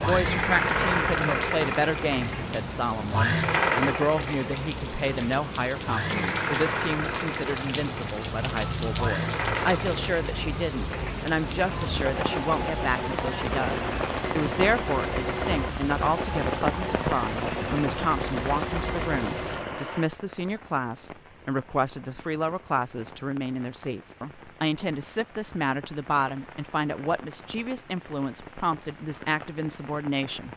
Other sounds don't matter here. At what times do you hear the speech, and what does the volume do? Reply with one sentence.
The speech can be heard from 0.1 to 30.5 s, at a steady volume.